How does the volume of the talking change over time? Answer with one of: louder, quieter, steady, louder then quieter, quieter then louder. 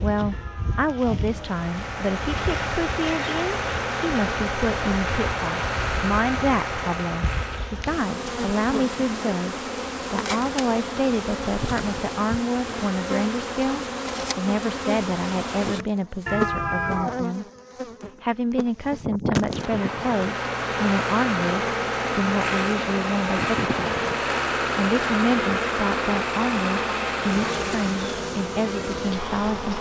steady.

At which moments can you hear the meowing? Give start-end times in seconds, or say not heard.
0.3-1.4, 16.2-17.2.